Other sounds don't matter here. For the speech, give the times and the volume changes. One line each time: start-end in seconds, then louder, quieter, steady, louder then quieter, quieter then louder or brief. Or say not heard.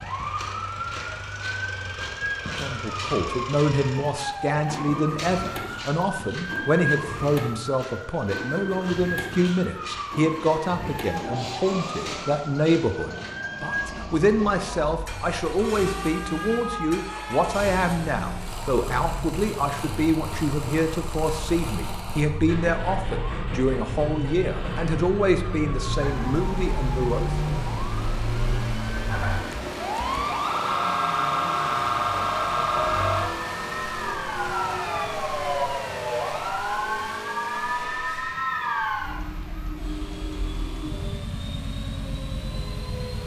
2.5-27.3 steady.